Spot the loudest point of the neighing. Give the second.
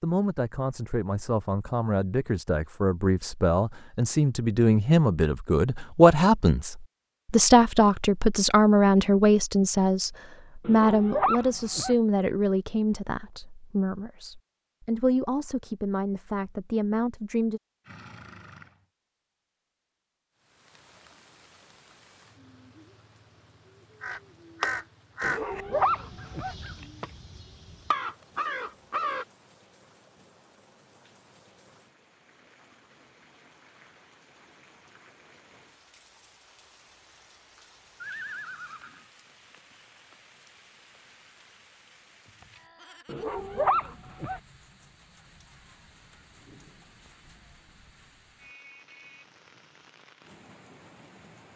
38 s.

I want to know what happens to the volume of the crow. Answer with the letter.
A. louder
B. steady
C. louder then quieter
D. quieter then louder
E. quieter
D.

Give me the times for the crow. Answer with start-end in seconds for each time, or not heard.
24.0-29.2.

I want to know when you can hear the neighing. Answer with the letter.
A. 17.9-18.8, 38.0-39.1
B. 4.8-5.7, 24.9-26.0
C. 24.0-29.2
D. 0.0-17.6
A.